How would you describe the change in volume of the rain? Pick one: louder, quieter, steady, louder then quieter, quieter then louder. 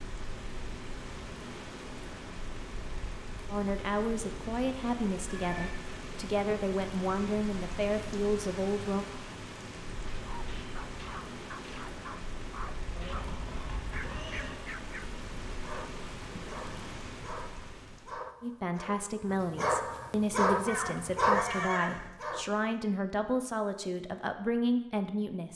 steady.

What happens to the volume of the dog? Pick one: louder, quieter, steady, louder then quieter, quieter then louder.
louder.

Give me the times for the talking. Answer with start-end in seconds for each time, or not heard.
3.5-9.1, 18.4-25.5.